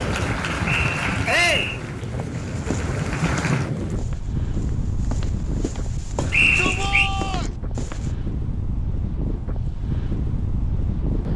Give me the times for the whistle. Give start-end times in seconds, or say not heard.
0.7-1.8, 6.3-7.1.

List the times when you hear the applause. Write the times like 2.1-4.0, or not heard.
0.0-3.7.